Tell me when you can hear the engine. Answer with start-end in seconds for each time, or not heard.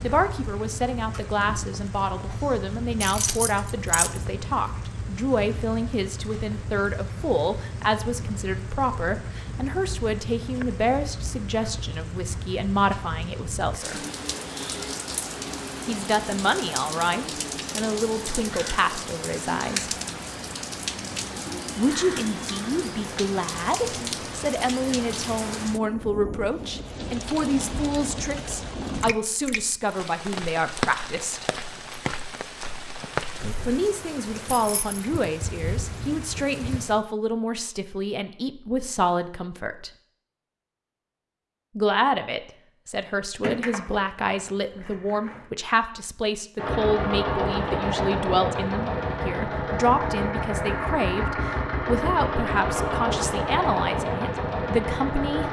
46.5-55.4.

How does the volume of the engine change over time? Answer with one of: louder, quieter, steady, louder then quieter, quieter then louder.
steady.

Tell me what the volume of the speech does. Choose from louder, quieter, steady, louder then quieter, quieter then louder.
steady.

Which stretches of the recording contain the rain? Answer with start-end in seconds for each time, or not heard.
0.0-37.0.